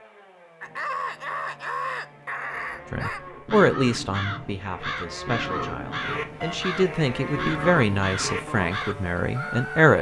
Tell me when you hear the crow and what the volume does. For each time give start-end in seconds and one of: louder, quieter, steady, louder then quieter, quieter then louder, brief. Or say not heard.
0.6-9.9 steady.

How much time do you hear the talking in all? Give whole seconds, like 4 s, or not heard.
7 s.